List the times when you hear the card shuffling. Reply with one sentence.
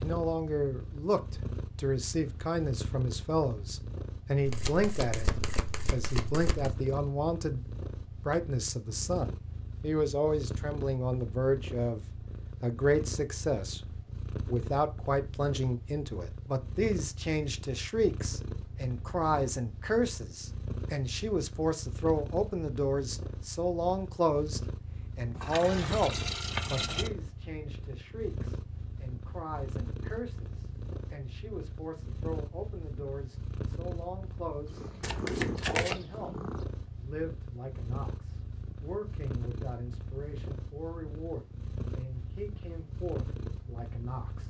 The card shuffling can be heard from 4.5 to 6.8 s and from 35.0 to 36.0 s.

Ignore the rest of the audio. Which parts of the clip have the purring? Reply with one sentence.
The purring can be heard from 0.0 to 44.4 s.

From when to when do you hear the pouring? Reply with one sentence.
You can hear the pouring from 25.4 to 27.1 s.